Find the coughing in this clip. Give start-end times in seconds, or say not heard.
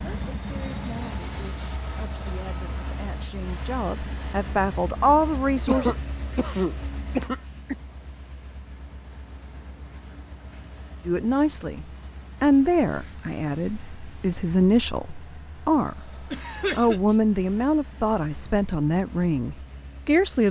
5.7-7.8, 16.3-17.0.